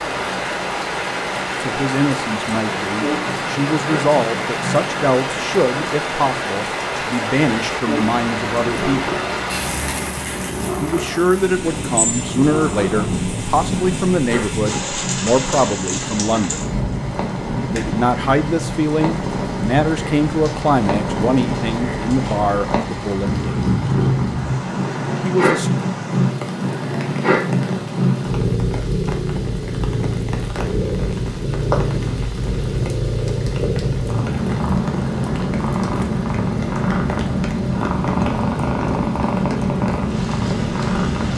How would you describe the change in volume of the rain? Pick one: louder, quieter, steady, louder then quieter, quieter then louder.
quieter.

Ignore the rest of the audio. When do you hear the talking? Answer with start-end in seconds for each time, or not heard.
1.6-9.1, 10.8-16.6, 17.7-23.4, 25.2-25.7.